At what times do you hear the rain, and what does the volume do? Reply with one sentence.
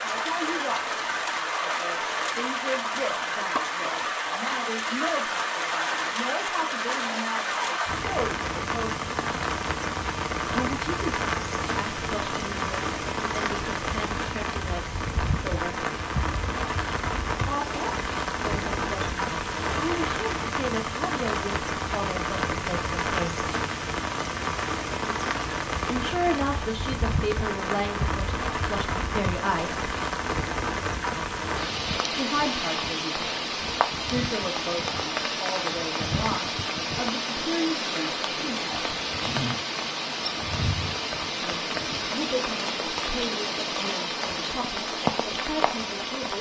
The rain can be heard from 0.0 to 46.3 s, at a steady volume.